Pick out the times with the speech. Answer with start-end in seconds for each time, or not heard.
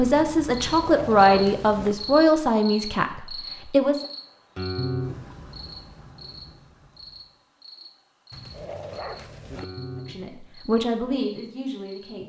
0.0-4.0, 9.9-12.2.